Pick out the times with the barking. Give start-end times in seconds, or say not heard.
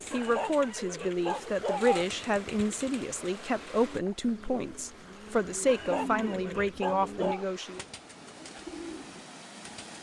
0.1-2.0, 5.7-7.5.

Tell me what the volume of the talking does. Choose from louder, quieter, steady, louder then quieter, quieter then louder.
steady.